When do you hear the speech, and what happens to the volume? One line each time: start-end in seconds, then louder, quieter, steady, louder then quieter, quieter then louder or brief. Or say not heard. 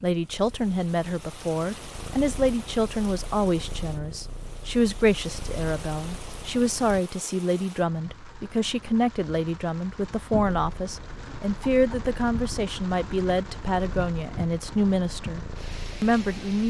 0.0-16.6 steady.